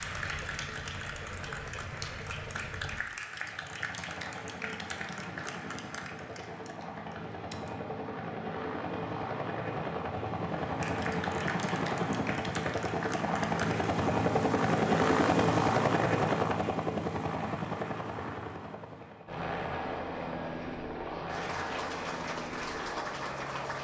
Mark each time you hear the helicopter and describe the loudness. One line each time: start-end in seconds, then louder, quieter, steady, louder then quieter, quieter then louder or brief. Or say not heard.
0.0-23.7 louder then quieter.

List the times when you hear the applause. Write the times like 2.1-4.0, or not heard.
0.0-7.8, 10.8-13.9, 21.2-23.7.